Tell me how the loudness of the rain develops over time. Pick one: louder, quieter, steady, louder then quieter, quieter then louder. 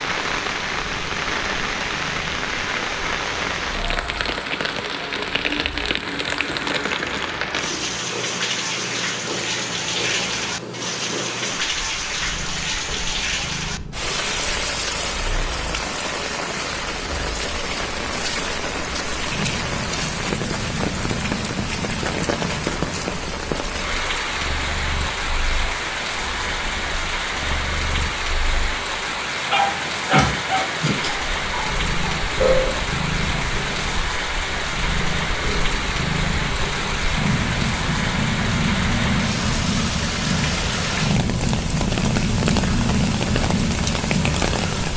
steady.